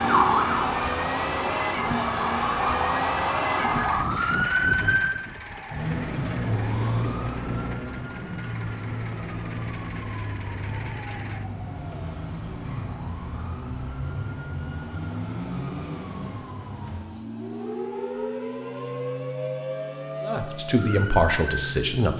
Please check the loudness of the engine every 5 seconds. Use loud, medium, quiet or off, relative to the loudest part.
loud, medium, medium, medium, medium.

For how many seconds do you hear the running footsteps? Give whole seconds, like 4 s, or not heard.
not heard.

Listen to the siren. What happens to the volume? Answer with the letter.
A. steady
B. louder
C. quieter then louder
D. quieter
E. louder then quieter
D.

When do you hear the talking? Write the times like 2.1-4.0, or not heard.
20.2-22.1.